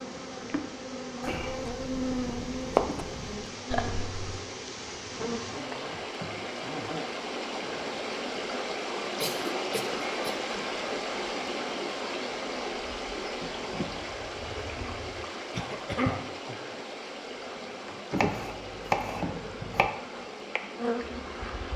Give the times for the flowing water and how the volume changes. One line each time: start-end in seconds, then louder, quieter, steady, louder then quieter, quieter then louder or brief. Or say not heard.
0.0-21.7 louder then quieter.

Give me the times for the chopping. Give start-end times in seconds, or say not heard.
1.2-3.4, 18.1-19.9.